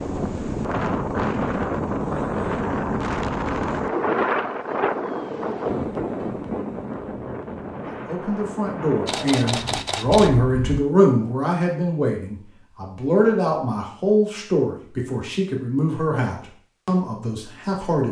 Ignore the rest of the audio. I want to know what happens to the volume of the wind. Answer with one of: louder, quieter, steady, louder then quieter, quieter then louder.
quieter.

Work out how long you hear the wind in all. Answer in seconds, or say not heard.
11 s.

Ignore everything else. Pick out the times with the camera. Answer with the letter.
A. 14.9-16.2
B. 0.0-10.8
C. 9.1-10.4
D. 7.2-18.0
C.